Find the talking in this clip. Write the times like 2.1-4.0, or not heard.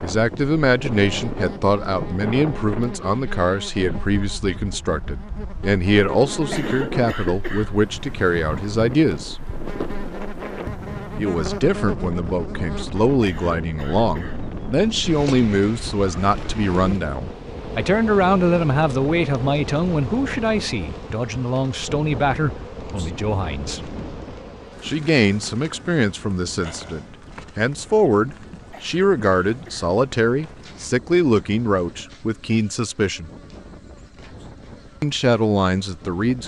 0.0-9.3, 11.2-23.8, 24.8-33.3, 35.0-36.4.